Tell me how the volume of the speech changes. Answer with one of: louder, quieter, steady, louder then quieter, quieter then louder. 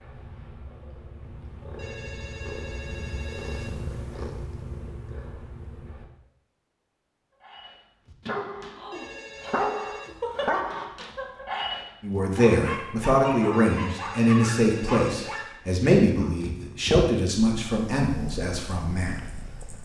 quieter.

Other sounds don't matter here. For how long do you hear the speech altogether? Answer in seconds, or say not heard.
7 s.